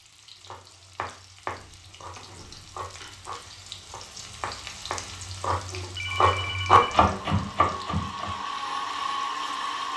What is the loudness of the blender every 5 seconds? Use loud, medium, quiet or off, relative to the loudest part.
off, loud.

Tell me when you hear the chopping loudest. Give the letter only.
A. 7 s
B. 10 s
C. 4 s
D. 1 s
A.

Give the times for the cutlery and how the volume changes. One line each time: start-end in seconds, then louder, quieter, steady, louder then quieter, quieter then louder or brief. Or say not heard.
not heard.